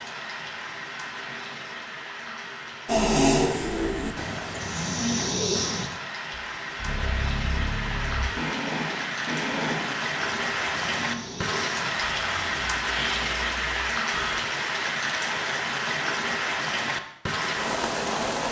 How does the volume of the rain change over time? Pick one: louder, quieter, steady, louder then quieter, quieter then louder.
louder.